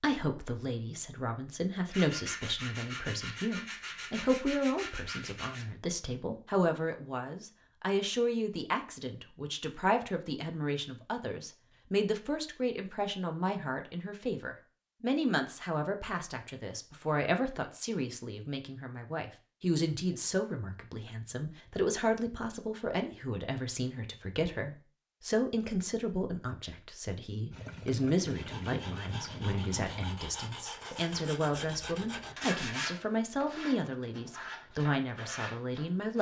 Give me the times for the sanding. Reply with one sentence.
The sanding can be heard from 1.9 to 5.7 s and from 28.3 to 36.1 s.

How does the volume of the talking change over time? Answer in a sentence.
The volume of the talking stays about the same.